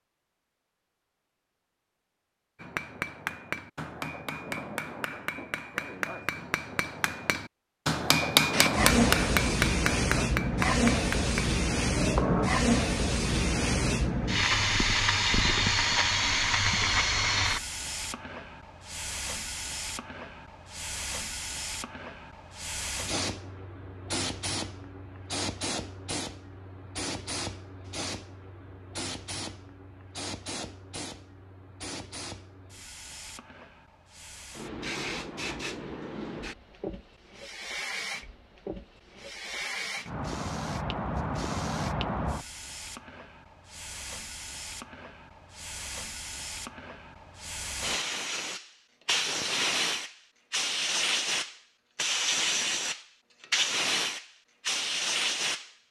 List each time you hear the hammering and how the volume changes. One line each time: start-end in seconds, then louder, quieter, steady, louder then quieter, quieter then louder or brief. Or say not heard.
2.6-12.5 louder then quieter.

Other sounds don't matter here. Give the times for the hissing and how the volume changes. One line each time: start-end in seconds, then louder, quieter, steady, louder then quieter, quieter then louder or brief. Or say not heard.
8.5-55.7 quieter then louder.